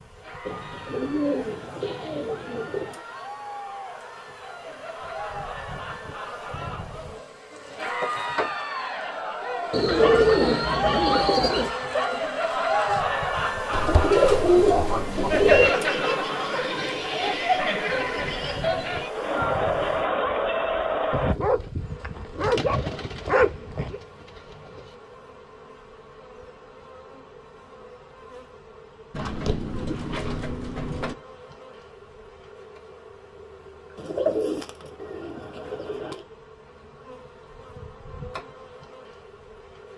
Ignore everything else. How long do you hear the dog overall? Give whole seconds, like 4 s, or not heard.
5 s.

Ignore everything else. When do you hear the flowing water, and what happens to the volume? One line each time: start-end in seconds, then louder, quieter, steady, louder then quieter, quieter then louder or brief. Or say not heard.
not heard.